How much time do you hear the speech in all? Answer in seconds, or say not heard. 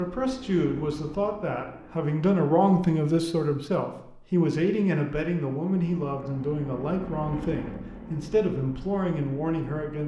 10 s.